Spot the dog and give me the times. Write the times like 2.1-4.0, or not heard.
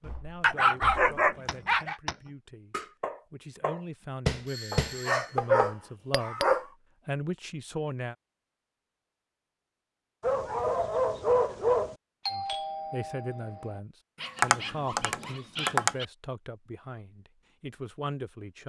0.4-1.9, 4.7-6.7, 10.2-11.9, 14.2-16.1.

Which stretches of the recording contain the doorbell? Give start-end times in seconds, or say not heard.
4.5-5.3, 12.2-13.8.